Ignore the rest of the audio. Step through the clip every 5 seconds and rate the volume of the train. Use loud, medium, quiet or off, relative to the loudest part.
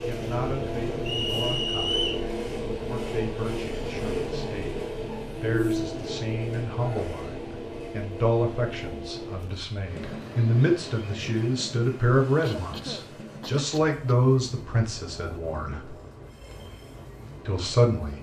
loud, loud, medium, quiet.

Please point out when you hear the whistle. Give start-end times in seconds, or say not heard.
1.1-2.2.